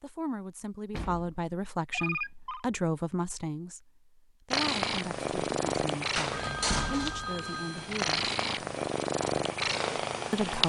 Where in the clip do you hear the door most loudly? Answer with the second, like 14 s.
7 s.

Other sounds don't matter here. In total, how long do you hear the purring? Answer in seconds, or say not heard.
6 s.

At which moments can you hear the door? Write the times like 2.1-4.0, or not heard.
0.9-1.4, 6.2-7.2.